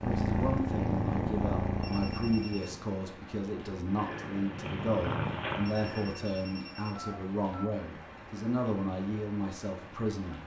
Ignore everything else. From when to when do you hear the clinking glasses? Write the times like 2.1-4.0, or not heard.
not heard.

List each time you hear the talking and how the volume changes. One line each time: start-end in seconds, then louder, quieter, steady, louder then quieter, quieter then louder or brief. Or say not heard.
0.0-10.4 steady.